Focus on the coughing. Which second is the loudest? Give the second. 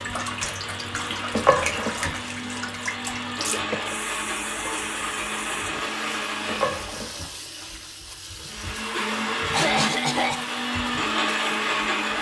10 s.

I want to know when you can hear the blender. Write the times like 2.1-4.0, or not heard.
0.0-7.0, 8.4-12.1.